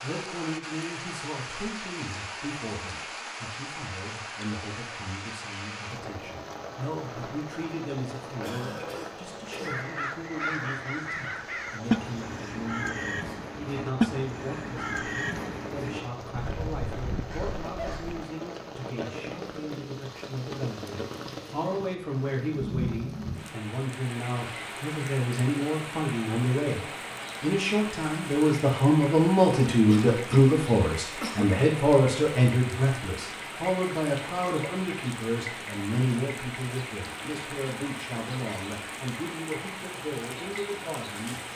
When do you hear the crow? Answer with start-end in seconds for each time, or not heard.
9.6-18.2.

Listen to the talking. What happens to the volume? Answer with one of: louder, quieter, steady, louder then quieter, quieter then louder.
louder then quieter.